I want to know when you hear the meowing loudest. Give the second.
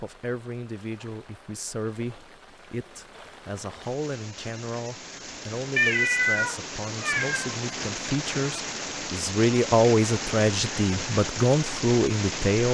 6 s.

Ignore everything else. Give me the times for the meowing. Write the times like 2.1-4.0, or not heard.
5.8-7.5.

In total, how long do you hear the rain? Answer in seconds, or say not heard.
13 s.